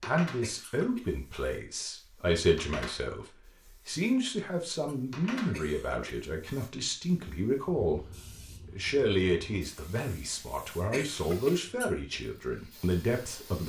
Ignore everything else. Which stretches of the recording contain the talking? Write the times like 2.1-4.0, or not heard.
0.0-13.6.